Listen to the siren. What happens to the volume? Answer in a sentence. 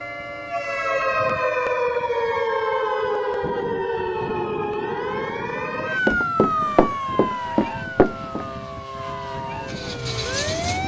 The loudness of the siren goes down.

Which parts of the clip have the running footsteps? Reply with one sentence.
The running footsteps can be heard from 5.8 to 8.4 s.